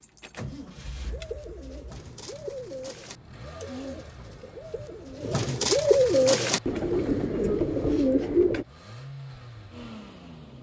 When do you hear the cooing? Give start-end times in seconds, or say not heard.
1.1-8.7.